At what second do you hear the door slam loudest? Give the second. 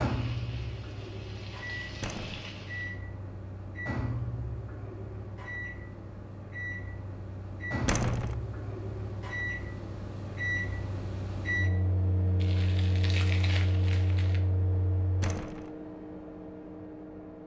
8 s.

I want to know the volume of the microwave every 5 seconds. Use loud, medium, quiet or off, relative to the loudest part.
loud, loud, loud, medium.